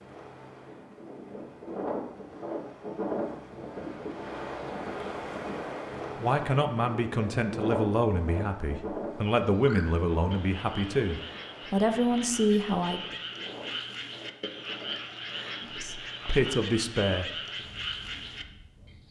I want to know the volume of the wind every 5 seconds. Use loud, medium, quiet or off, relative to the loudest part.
loud, loud, medium, quiet.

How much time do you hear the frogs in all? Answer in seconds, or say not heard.
9 s.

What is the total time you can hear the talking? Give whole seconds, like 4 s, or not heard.
9 s.